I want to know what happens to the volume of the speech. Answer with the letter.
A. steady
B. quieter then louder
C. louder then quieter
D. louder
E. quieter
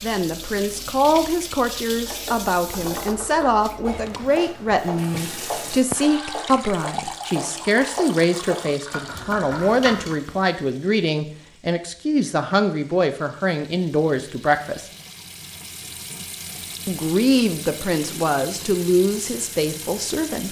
A.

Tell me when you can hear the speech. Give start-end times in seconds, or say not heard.
0.0-14.8, 16.9-20.4.